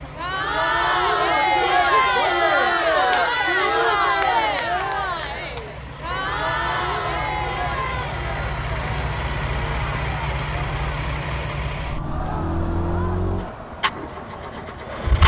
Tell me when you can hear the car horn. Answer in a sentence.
The car horn can be heard from 6.0 to 8.1 s.